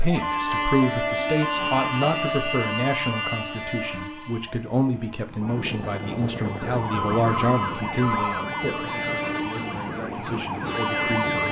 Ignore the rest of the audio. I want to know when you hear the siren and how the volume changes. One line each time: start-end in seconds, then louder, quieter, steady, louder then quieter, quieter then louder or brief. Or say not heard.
0.0-11.4 quieter then louder.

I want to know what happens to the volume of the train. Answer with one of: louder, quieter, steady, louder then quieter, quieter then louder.
quieter then louder.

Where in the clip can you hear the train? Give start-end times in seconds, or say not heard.
0.0-11.4.